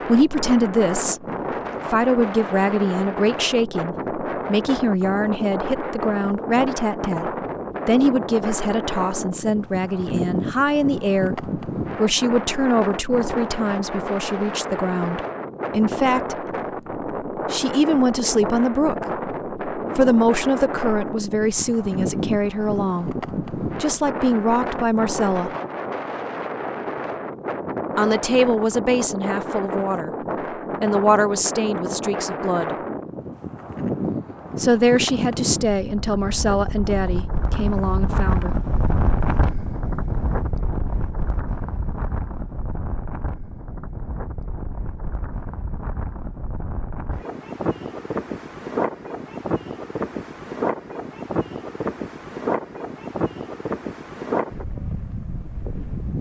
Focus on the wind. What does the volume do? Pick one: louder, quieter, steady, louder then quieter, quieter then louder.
steady.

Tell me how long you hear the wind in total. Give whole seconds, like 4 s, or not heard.
56 s.